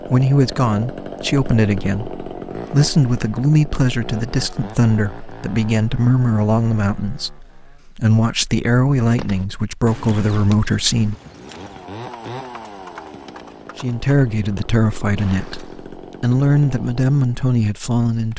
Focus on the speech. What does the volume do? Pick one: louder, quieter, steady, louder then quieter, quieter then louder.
steady.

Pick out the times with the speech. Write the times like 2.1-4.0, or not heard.
0.1-11.2, 13.8-18.3.